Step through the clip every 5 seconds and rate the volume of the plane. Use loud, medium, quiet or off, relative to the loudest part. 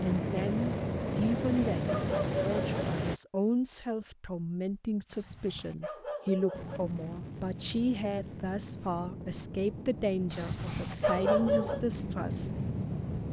loud, medium, medium.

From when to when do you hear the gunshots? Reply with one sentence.
The gunshots can't be heard in this clip.